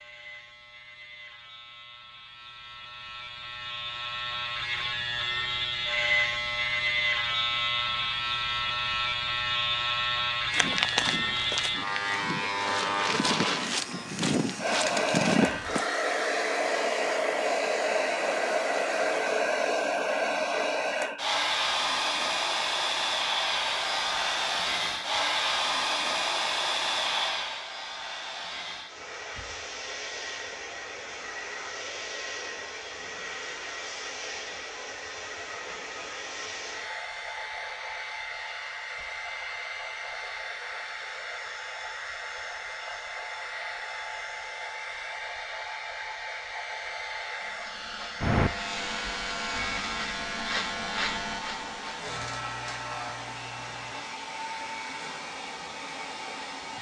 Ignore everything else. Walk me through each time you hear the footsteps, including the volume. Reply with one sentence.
The footsteps can be heard from 10.5 to 15.8 s, getting quieter then louder.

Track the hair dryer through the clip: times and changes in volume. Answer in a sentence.
The hair dryer can be heard from 14.6 to 56.7 s, getting quieter.